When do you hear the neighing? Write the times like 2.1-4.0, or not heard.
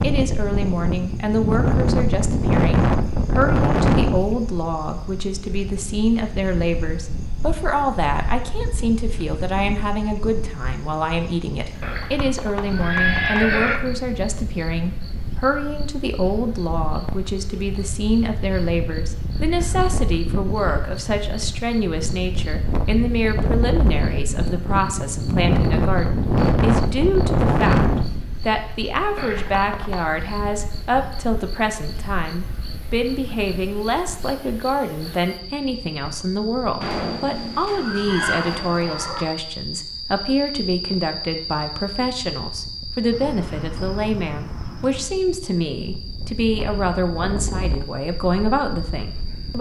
11.8-13.8, 29.1-30.1, 36.8-39.2.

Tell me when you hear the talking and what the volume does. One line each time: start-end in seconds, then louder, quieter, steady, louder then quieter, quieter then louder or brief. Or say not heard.
0.0-49.5 steady.